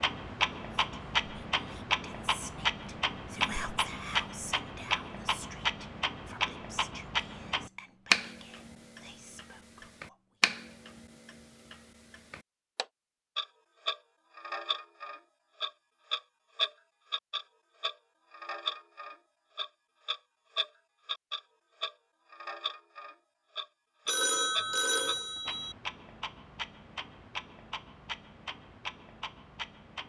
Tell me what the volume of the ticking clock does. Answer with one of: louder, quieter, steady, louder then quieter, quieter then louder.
quieter.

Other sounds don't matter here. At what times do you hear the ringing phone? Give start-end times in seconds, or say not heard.
24.1-25.8.